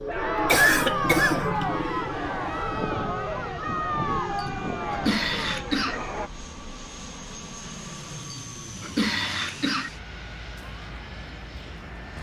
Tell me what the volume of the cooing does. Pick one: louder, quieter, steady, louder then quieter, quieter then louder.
quieter.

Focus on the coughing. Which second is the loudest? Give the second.
1 s.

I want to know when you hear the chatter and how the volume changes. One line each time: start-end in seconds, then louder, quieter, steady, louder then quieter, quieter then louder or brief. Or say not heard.
0.0-6.3 quieter.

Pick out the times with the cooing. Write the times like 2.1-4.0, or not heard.
0.0-5.9.